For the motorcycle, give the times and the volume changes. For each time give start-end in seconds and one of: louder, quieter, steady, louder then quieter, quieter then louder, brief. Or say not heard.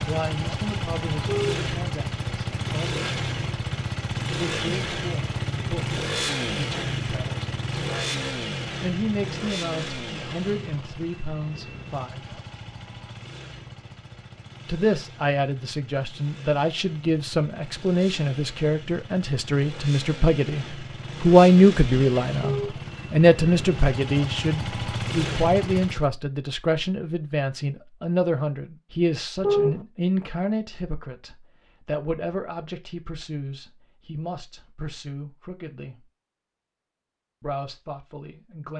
0.0-26.1 quieter then louder.